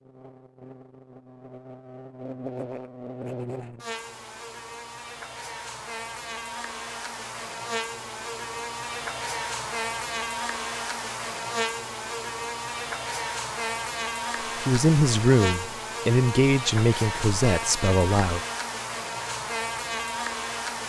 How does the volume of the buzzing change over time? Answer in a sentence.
The loudness of the buzzing goes up.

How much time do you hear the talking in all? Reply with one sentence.
You can hear the talking for 4 seconds altogether.